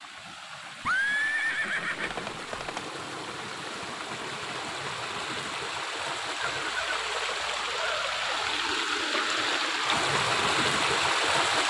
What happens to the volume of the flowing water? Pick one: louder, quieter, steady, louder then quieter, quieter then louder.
louder.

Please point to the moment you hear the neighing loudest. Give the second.
1 s.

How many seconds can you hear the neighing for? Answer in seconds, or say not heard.
4 s.